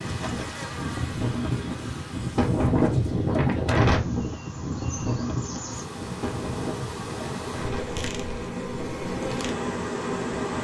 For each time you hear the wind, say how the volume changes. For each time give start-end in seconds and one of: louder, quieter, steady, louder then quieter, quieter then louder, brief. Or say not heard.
0.0-10.5 louder then quieter.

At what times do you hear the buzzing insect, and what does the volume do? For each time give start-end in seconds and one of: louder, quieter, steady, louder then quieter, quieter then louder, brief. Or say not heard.
0.0-10.5 quieter then louder.